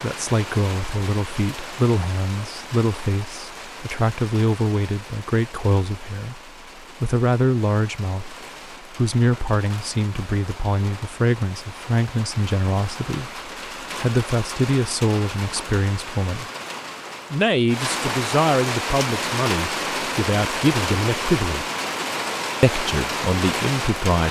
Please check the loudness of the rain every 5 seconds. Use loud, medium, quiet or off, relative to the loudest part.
medium, quiet, medium, loud, loud.